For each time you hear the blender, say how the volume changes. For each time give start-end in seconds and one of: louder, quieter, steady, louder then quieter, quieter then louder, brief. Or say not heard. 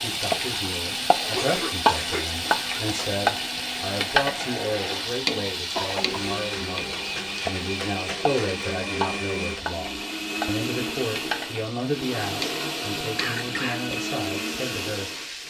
0.0-15.4 louder.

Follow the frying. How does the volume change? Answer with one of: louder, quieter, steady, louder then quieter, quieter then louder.
quieter.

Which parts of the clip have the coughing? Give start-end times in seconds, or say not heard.
1.2-3.1, 5.8-6.2, 13.2-13.8.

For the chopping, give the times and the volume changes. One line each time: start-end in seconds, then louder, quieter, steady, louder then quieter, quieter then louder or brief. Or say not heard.
not heard.